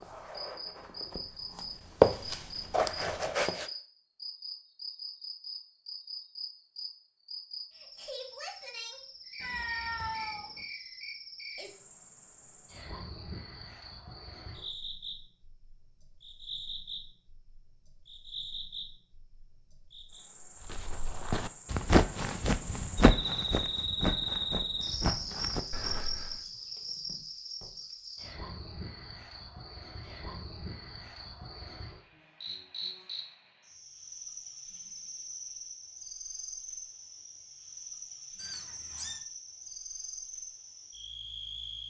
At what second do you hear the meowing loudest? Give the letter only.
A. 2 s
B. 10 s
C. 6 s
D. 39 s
B.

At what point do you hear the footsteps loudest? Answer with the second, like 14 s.
2 s.